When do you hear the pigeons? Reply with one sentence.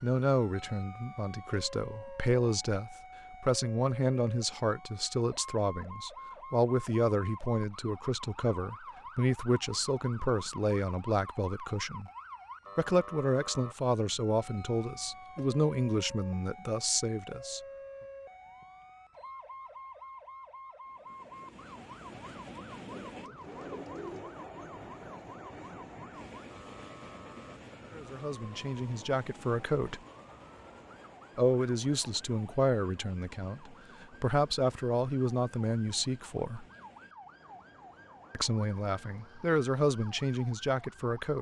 You can hear the pigeons from 22.9 to 24.4 s.